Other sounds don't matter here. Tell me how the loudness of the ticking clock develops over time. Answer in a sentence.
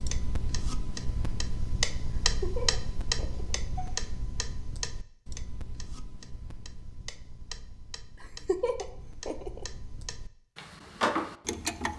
The loudness of the ticking clock goes down, then up.